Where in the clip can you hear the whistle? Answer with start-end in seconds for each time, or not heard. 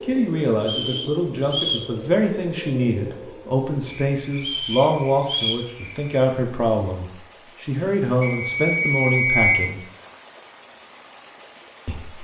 0.6-1.9, 4.3-5.7, 8.2-9.5.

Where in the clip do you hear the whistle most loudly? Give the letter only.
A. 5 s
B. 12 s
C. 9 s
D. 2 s
C.